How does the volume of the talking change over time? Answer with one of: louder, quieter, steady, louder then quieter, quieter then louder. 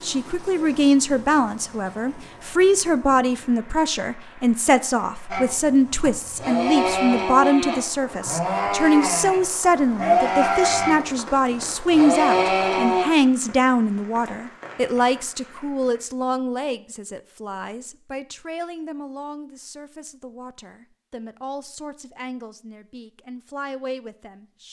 quieter.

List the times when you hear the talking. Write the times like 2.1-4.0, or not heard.
0.0-24.6.